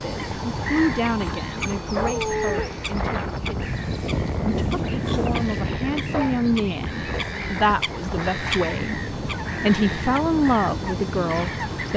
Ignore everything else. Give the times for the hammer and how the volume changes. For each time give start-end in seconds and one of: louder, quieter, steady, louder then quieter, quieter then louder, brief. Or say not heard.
not heard.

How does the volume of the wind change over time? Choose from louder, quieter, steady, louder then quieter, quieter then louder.
louder then quieter.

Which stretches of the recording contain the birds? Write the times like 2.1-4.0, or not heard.
0.0-11.9.